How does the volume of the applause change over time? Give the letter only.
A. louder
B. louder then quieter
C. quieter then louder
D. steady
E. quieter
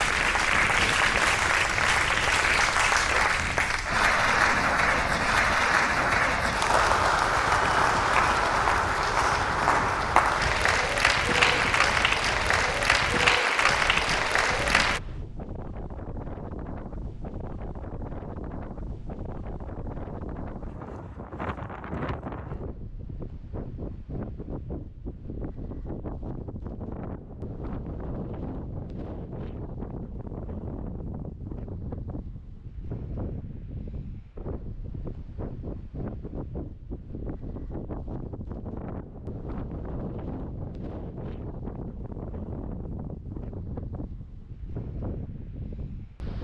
D.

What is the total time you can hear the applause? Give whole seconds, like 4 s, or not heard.
15 s.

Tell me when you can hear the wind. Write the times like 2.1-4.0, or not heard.
0.0-46.3.